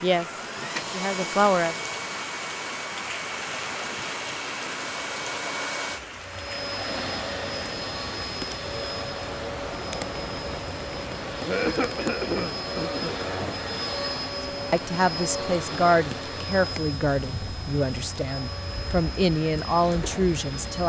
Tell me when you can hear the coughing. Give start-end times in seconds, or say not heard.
11.4-13.6.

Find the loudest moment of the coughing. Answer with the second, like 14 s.
12 s.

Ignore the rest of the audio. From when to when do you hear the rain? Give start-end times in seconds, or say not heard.
0.0-20.8.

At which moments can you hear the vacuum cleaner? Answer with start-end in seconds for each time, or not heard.
0.1-20.8.